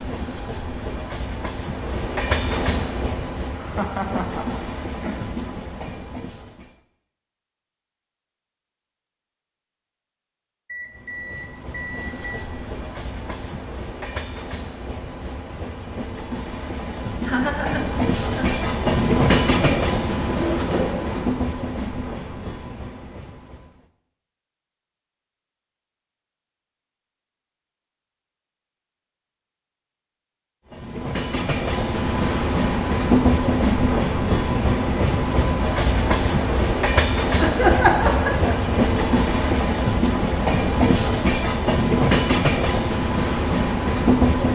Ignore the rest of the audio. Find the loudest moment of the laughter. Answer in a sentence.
The loudest moment of the laughter is at 38 seconds.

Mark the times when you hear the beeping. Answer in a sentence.
The beeping can be heard from 10.7 to 12.3 s.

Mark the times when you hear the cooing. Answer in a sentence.
You can hear the cooing from 19.6 to 21.2 s.